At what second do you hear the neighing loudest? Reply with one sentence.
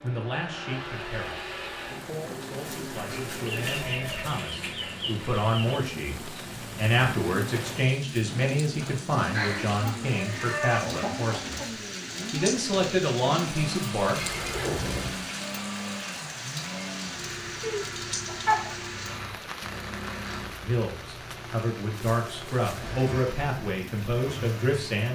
The loudest moment of the neighing is at 15 seconds.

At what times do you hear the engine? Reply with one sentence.
You can hear the engine from 0.0 to 25.1 s.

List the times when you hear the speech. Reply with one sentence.
The speech can be heard from 0.0 to 11.7 s, from 12.3 to 14.2 s and from 20.6 to 25.1 s.